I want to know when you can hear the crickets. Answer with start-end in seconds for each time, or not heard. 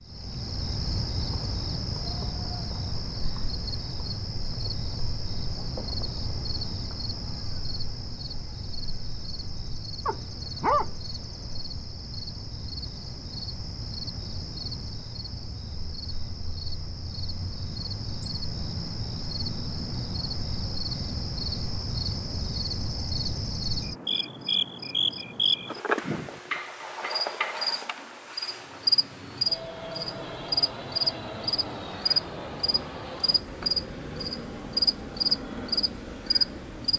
0.0-36.9.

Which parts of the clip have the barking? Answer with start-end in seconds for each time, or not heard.
10.1-11.6.